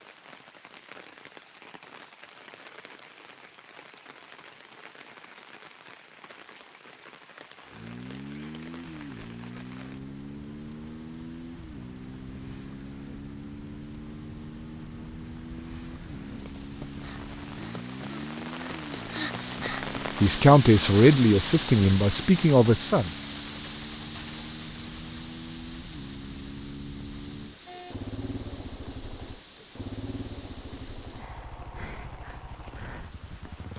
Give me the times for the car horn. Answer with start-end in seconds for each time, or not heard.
27.6-28.1.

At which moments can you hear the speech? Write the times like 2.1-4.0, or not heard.
20.2-23.1.